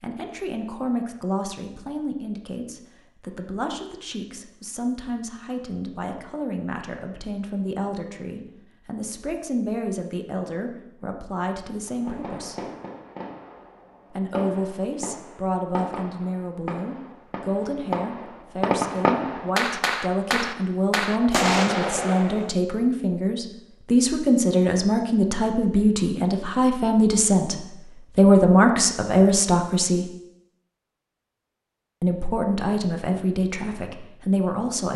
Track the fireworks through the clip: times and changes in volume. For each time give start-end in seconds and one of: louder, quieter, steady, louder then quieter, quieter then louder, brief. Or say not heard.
11.8-22.5 louder.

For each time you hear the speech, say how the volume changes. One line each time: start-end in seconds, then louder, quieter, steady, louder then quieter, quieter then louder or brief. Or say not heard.
0.0-12.6 steady
14.1-30.1 louder
32.0-34.9 brief.